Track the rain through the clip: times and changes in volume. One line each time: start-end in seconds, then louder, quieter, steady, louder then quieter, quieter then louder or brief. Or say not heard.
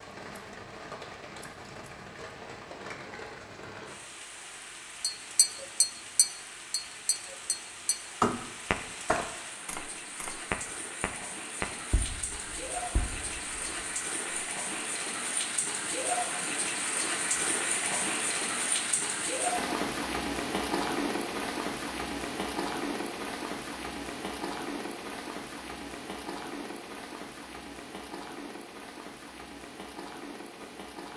0.0-31.1 louder then quieter.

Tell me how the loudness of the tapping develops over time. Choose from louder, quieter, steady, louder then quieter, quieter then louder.
quieter.